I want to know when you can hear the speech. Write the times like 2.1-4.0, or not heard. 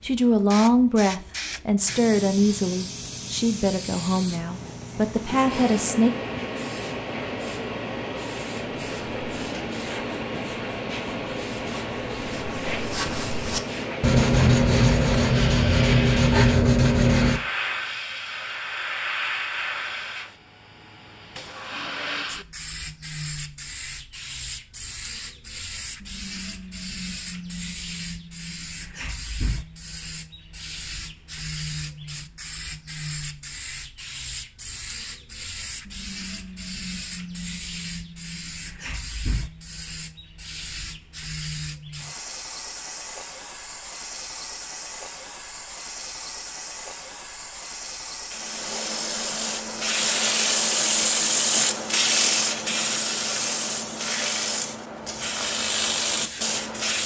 0.0-6.1.